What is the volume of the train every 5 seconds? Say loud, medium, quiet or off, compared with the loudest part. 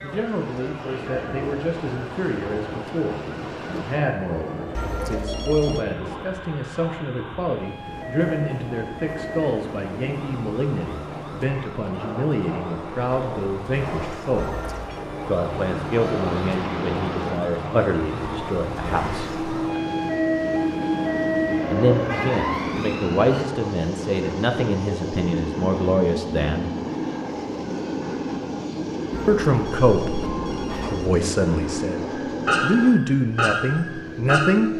medium, medium, medium, loud, loud, loud, loud.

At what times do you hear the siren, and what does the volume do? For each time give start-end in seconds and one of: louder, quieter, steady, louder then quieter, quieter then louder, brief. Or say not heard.
0.0-23.4 louder
32.1-34.7 brief.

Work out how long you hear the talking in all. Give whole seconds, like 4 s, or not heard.
29 s.